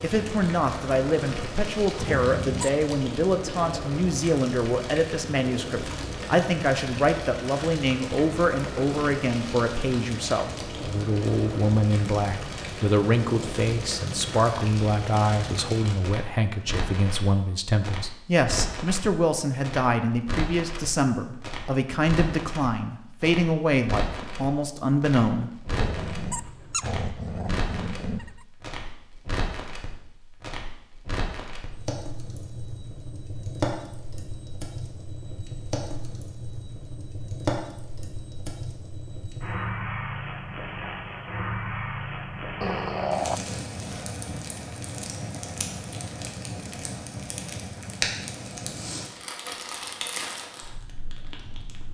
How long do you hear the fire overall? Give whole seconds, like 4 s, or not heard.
52 s.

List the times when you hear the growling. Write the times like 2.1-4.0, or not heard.
1.9-2.8, 25.6-28.4, 42.6-43.5.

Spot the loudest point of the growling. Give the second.
43 s.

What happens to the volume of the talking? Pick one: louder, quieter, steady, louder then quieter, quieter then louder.
steady.